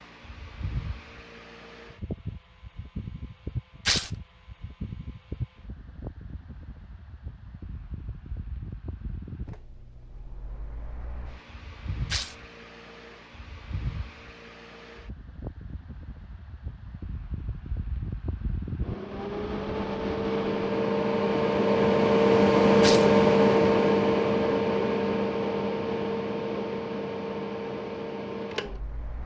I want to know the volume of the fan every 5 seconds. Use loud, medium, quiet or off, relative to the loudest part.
quiet, quiet, quiet, quiet, loud, medium.